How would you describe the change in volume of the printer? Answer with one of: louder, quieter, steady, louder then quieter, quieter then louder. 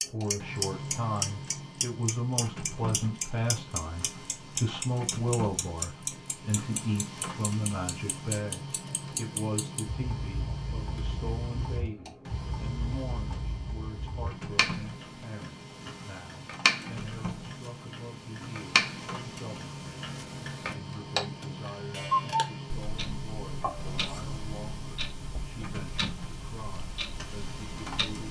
steady.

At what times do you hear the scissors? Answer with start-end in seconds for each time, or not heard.
23.6-24.4.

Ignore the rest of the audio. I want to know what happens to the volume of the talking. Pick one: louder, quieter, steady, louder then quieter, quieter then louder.
quieter.